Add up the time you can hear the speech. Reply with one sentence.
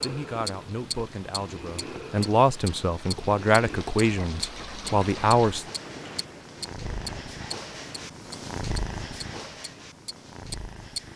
You can hear the speech for 6 seconds altogether.